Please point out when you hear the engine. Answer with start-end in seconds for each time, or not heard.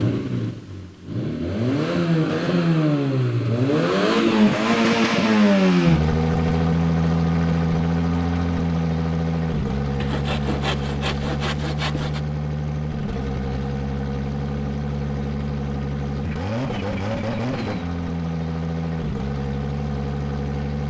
0.0-20.8.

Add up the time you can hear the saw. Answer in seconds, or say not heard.
2 s.